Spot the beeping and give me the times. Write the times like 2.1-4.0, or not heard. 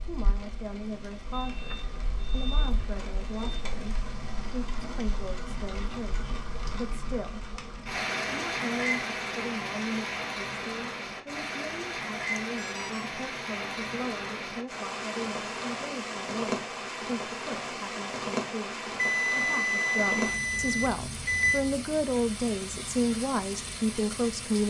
1.3-3.6, 12.4-13.1, 18.9-21.6.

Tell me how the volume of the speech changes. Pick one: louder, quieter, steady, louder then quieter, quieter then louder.
louder.